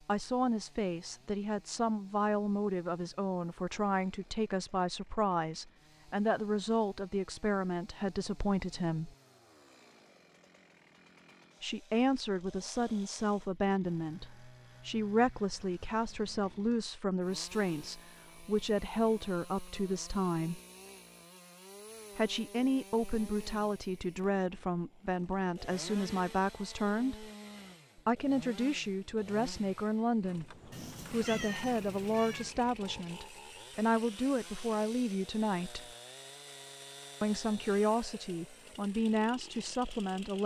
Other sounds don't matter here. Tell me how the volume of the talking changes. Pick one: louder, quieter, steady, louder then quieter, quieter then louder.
steady.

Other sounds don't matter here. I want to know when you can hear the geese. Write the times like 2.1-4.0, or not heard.
not heard.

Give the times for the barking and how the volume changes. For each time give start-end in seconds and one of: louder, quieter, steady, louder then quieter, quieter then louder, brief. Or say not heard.
not heard.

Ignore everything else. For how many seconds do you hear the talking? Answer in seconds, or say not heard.
34 s.